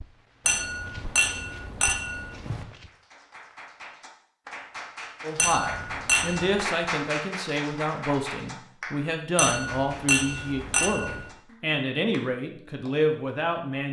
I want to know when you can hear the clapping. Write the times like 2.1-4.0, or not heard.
2.7-13.1.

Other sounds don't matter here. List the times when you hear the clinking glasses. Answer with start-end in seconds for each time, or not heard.
0.5-2.6, 5.3-6.7, 9.3-11.2.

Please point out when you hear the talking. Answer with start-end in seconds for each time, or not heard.
5.2-13.8.